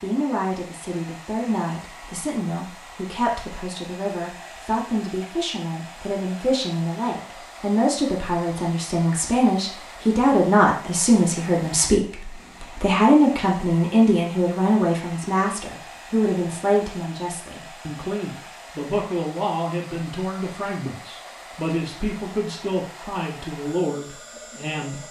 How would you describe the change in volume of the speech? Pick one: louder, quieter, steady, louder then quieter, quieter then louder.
louder then quieter.